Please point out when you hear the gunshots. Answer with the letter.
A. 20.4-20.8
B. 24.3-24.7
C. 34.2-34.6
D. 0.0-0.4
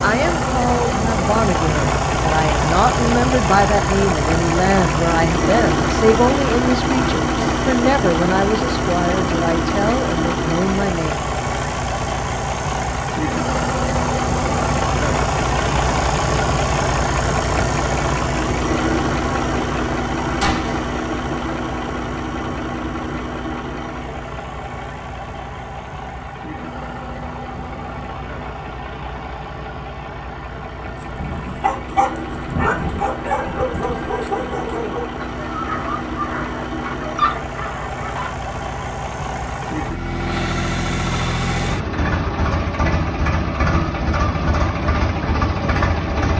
A.